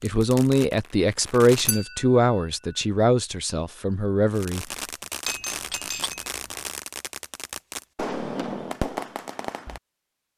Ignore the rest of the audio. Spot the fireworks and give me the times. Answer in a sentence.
The fireworks can be heard from 0.0 to 1.8 s and from 4.3 to 9.8 s.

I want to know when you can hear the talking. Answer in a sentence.
The talking can be heard from 0.0 to 4.7 s.